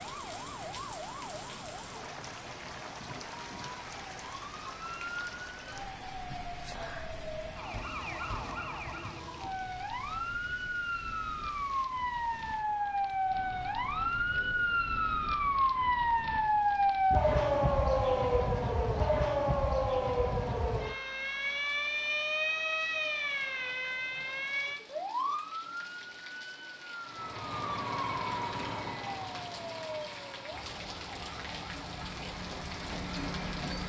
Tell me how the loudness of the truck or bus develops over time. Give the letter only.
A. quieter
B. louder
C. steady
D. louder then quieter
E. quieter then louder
E.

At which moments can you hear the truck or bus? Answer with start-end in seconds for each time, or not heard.
27.0-33.8.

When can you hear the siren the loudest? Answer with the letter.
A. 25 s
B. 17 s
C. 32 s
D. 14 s
B.